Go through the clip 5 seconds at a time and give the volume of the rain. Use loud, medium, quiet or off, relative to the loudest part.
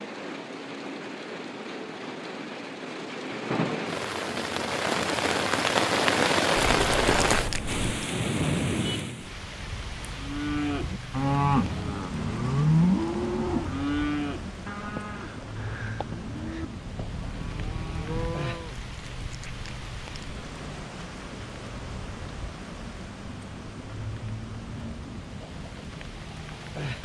medium, loud, quiet, quiet, quiet, quiet.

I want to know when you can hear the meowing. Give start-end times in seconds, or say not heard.
6.7-8.1, 18.6-20.4.